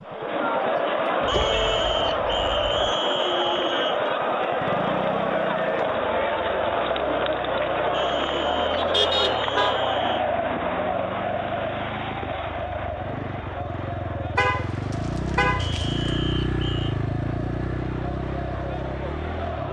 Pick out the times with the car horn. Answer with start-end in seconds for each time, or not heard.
1.2-3.0, 8.8-9.8, 14.3-16.1.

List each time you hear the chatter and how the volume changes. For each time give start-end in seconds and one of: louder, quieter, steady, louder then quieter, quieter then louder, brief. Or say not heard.
0.0-19.6 quieter.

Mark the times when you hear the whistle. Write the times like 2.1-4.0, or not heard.
1.2-4.0, 7.9-10.2, 15.6-16.9.